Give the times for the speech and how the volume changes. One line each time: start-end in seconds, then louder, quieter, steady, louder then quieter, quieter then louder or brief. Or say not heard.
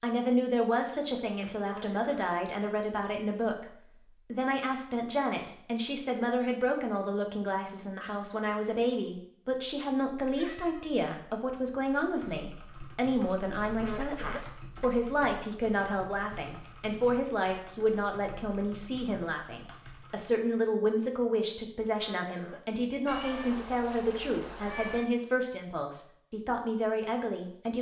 0.0-27.7 steady.